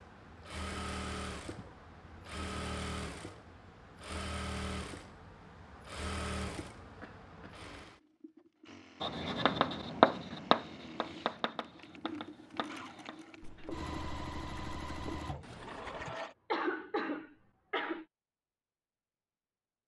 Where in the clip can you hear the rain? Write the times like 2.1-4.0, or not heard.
not heard.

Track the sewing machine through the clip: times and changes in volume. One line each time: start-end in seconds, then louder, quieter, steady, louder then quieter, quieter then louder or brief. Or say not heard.
0.0-16.4 quieter then louder.